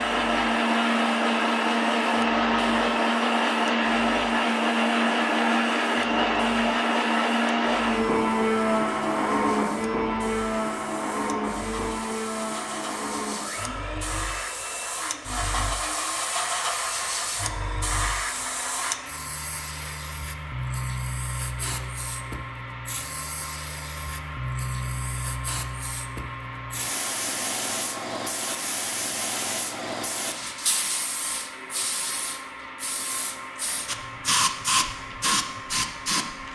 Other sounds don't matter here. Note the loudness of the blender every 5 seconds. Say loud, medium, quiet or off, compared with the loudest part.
loud, loud, medium, quiet, quiet, quiet, quiet, quiet.